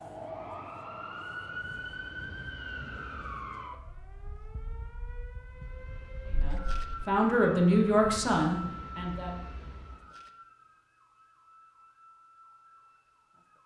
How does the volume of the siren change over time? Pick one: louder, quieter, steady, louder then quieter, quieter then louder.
quieter.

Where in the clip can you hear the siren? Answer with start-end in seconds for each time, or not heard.
0.0-13.6.